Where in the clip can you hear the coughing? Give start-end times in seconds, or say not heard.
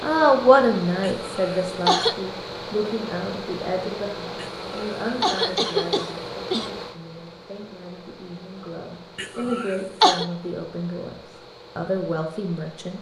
1.0-2.1, 4.3-6.7, 9.2-10.2.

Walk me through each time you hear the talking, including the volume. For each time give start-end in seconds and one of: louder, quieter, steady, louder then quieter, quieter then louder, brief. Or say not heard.
0.0-11.2 quieter then louder
11.8-12.9 brief.